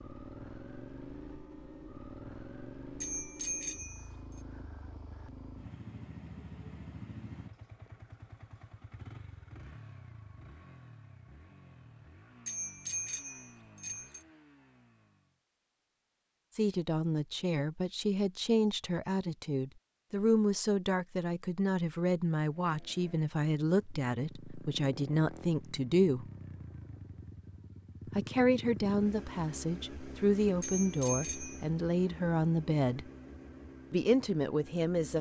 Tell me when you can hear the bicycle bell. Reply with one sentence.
You can hear the bicycle bell from 3.0 to 4.4 s, from 12.4 to 14.2 s and from 30.6 to 31.6 s.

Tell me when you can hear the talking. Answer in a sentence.
You can hear the talking from 16.6 to 26.3 s, from 28.1 to 33.0 s and from 33.9 to 35.1 s.